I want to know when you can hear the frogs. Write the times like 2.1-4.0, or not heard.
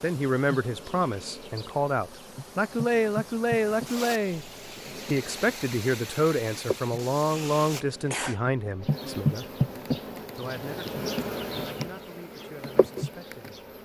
not heard.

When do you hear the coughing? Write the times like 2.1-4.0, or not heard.
7.3-8.4.